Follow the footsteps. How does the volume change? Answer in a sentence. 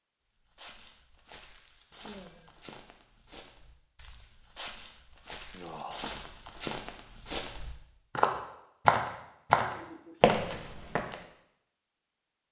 The volume of the footsteps goes up.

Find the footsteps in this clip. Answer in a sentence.
The footsteps can be heard from 0.5 to 11.2 s.